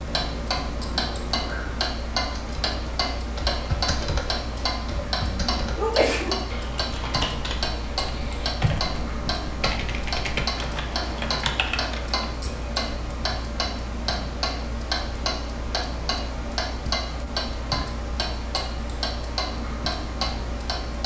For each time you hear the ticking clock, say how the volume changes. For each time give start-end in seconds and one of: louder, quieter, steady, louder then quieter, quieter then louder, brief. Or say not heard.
0.0-21.0 steady.